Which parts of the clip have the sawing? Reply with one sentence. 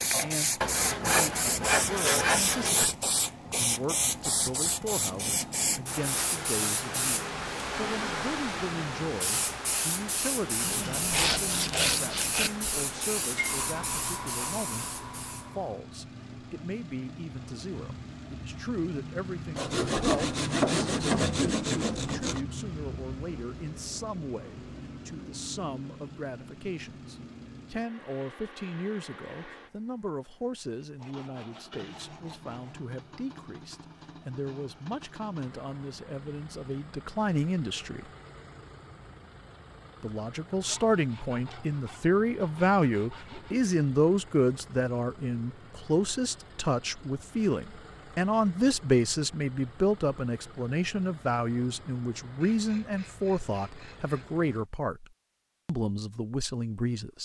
You can hear the sawing from 0.6 to 2.9 s, from 10.6 to 12.5 s, from 19.6 to 22.4 s, from 30.9 to 32.8 s, from 40.6 to 43.5 s and from 52.4 to 54.3 s.